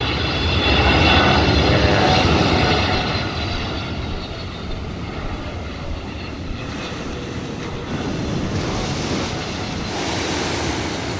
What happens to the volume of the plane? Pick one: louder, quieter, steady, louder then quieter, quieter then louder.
quieter.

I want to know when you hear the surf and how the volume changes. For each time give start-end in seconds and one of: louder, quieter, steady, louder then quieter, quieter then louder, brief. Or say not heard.
3.1-11.1 louder.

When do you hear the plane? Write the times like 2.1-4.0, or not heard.
0.0-11.1.